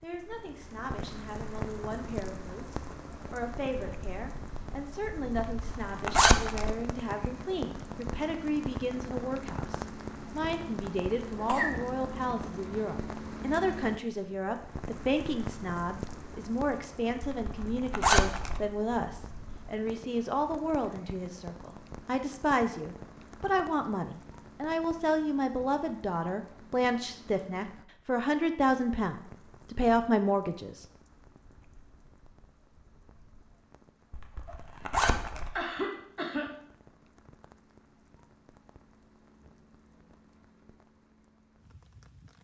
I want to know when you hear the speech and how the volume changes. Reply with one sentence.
You can hear the speech from 0.0 to 30.9 s, getting louder.